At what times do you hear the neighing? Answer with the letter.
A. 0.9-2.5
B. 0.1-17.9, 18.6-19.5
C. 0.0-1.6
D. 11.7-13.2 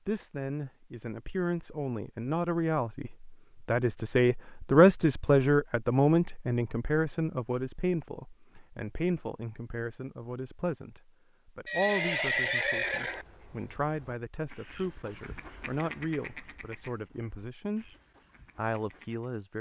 D.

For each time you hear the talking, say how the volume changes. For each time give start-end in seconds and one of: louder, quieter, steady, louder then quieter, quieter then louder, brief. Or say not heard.
0.1-17.9 louder then quieter
18.6-19.5 brief.